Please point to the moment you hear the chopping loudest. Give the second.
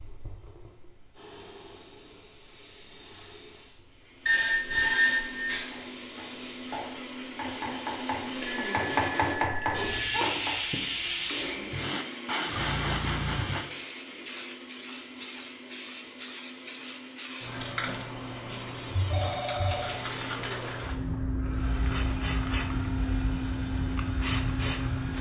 9 s.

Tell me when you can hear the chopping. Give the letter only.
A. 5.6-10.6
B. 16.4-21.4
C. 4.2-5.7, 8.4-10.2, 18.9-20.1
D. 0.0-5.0
A.